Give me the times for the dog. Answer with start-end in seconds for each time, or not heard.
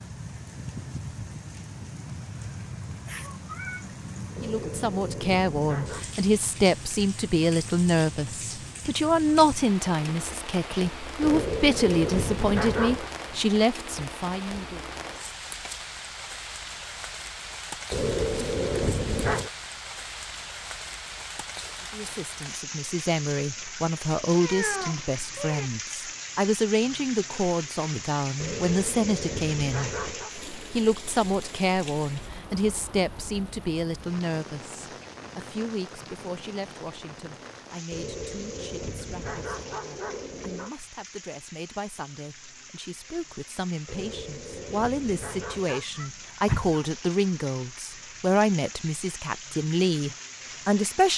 4.3-6.0, 11.2-13.1, 17.9-19.5, 28.4-30.4, 37.9-40.8, 43.9-45.9.